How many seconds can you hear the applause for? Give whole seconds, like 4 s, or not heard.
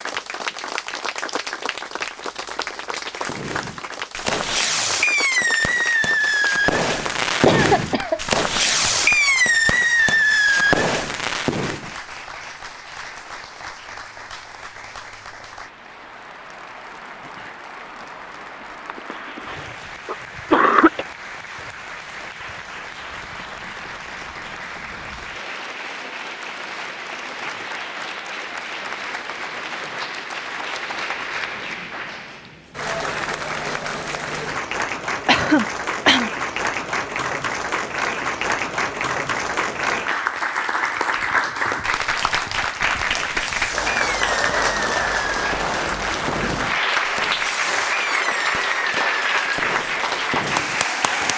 51 s.